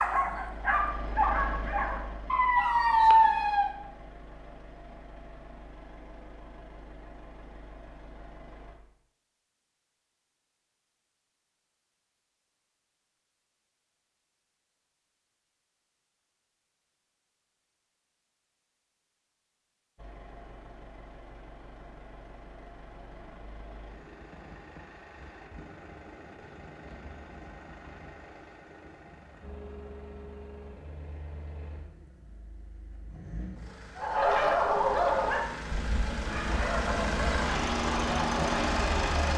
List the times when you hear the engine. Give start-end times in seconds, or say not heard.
0.0-8.8, 19.9-39.3.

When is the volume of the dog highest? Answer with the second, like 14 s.
3 s.